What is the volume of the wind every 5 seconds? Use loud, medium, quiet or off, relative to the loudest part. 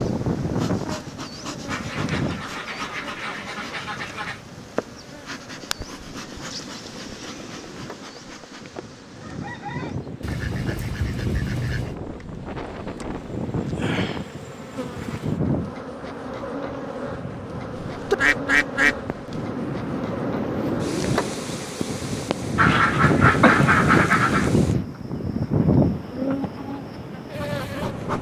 medium, quiet, medium, medium, loud, loud.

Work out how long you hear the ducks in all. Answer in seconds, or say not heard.
8 s.